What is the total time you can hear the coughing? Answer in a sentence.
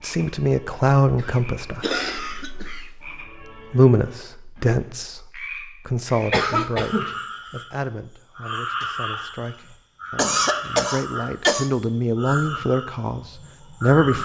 You can hear the coughing for 4 seconds altogether.